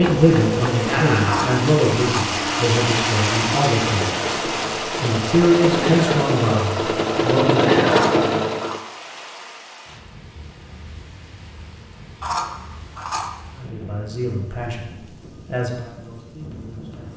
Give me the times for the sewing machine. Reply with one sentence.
You can hear the sewing machine from 0.0 to 8.8 s.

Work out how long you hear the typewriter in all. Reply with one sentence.
You can't hear the typewriter here.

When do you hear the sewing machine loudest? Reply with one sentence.
The volume of the sewing machine peaks at 8 seconds.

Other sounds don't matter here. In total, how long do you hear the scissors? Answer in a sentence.
You can hear the scissors for 3 seconds altogether.